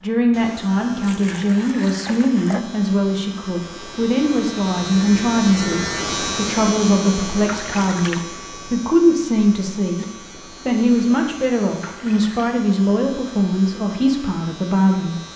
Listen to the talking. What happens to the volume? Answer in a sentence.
The loudness of the talking stays about the same.